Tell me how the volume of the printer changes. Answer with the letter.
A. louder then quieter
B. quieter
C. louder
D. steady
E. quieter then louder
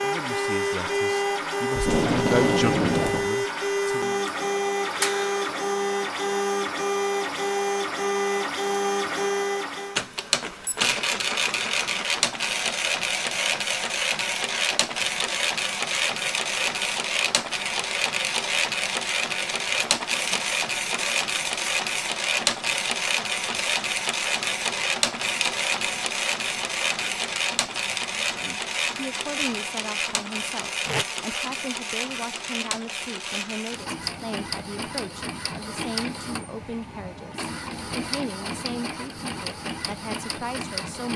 B.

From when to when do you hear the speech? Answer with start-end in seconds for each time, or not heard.
0.0-4.2, 28.1-41.1.